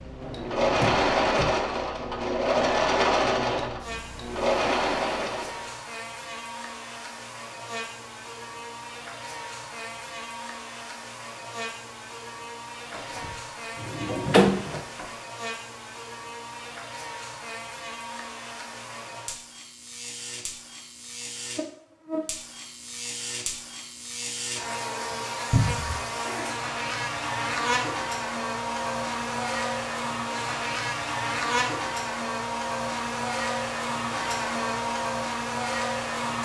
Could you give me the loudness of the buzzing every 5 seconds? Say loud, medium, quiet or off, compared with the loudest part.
medium, medium, medium, medium, medium, loud, loud, loud.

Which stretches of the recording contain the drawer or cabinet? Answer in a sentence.
The drawer or cabinet can be heard from 0.2 to 1.5 s, from 12.9 to 15.1 s and from 25.5 to 26.1 s.